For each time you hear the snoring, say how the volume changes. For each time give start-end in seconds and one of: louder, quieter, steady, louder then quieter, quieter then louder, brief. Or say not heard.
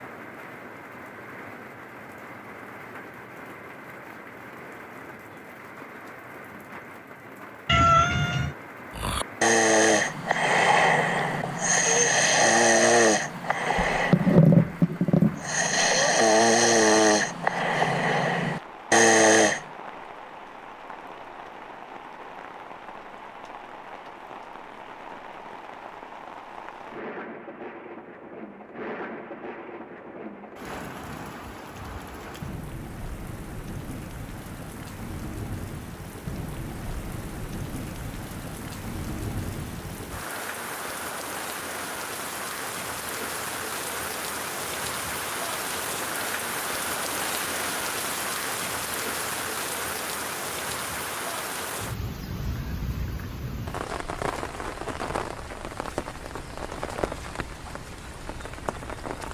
8.9-19.6 steady.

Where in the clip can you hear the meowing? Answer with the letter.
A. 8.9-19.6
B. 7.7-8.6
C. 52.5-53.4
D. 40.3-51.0
B.